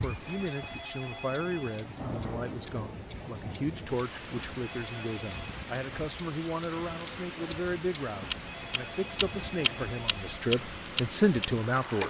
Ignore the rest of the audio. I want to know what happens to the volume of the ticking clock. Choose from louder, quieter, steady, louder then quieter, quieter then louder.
louder then quieter.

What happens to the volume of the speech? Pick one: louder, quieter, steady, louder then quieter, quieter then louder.
louder.